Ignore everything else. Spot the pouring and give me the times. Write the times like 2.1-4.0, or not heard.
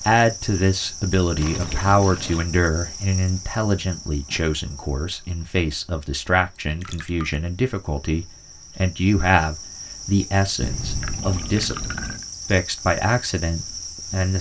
1.4-2.5, 6.7-7.5, 10.6-12.2.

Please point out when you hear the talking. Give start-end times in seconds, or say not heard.
0.0-14.3.